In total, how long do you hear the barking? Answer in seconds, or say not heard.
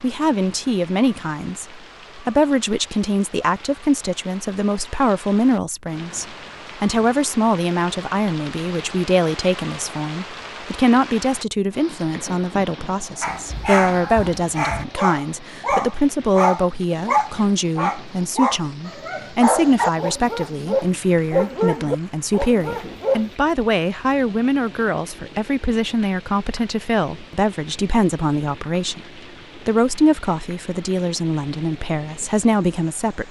10 s.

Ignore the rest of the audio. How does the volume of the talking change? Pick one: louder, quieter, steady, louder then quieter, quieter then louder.
steady.